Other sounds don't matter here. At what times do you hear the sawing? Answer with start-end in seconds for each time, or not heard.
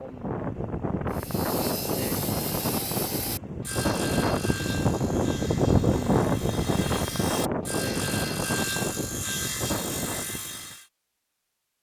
1.1-10.8.